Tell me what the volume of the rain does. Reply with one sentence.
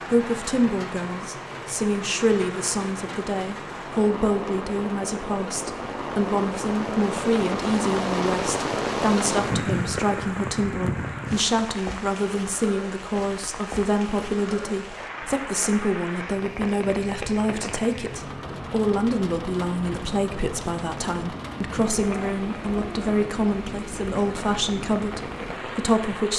The volume of the rain goes up, then down.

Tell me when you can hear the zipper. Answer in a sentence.
The zipper can't be heard in this clip.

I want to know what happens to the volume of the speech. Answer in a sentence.
The volume of the speech stays about the same.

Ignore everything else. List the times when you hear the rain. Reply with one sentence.
The rain can be heard from 0.0 to 26.3 s.